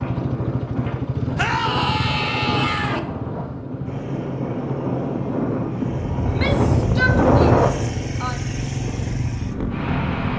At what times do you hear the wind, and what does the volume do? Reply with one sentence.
The wind can be heard from 0.0 to 10.3 s, getting louder then quieter.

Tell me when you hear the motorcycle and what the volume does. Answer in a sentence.
You can hear the motorcycle from 0.0 to 10.3 s, getting quieter then louder.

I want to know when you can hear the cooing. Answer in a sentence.
You can't hear the cooing here.